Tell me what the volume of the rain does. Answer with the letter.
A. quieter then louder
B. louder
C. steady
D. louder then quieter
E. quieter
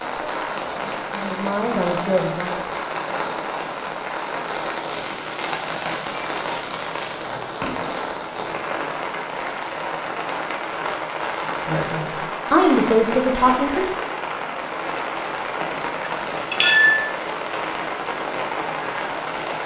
C.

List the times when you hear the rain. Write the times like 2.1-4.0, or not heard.
0.0-19.6.